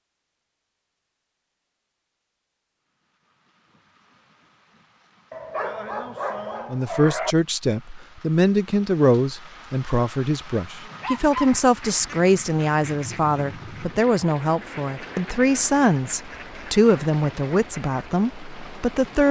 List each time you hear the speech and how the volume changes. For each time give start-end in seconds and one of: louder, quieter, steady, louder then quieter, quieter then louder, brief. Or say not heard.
6.7-19.2 steady.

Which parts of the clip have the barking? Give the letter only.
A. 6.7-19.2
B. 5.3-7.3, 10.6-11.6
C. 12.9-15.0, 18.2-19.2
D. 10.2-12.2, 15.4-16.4
B.